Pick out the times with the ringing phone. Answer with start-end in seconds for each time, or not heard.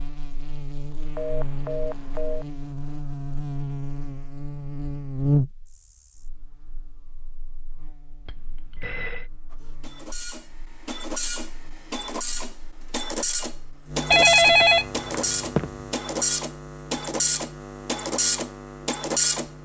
1.1-2.5, 8.2-9.3, 14.1-15.8.